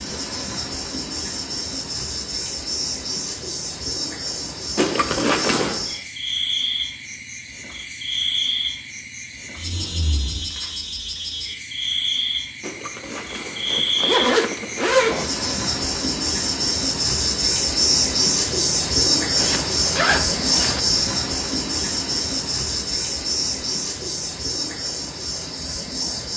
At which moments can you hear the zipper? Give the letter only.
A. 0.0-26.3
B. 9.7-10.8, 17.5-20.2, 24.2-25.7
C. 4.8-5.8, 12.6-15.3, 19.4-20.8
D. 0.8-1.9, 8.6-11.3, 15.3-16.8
C.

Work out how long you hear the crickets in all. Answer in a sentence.
The crickets can be heard for 26 seconds in total.